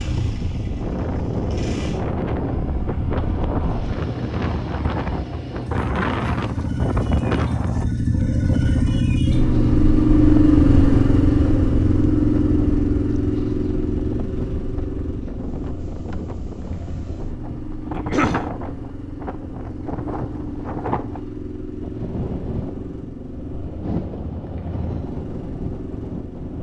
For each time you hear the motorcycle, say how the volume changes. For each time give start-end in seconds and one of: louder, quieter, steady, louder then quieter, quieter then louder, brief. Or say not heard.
0.0-26.5 louder then quieter.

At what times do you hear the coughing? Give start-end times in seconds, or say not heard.
17.9-18.5.